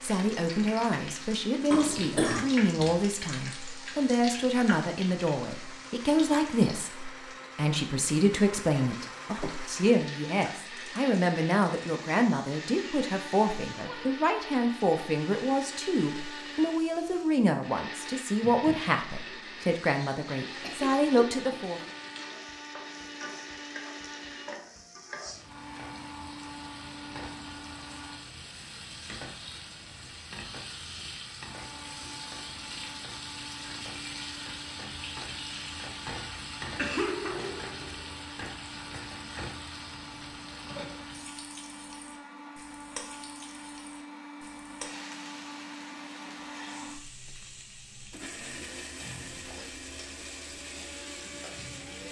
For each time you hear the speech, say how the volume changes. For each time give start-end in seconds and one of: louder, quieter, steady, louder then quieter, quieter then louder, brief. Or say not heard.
0.0-21.8 steady.